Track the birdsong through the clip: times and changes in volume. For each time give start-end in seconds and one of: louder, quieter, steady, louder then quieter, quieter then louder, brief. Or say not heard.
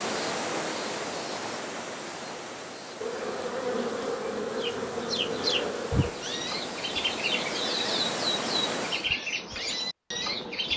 4.5-10.7 steady.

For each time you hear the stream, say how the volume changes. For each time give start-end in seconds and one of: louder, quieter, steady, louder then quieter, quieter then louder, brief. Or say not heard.
0.0-9.2 quieter then louder.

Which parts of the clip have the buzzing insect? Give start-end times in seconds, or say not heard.
3.0-6.1.